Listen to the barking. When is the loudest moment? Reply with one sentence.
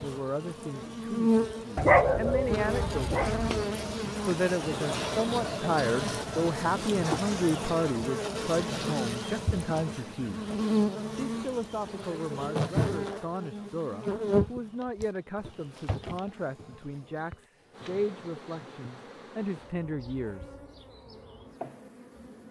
The volume of the barking peaks at 2 seconds.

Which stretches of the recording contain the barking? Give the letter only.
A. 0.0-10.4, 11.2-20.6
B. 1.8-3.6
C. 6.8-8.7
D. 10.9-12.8
B.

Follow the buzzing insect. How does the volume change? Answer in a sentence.
The volume of the buzzing insect goes down.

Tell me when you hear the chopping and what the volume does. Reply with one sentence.
You can't hear the chopping here.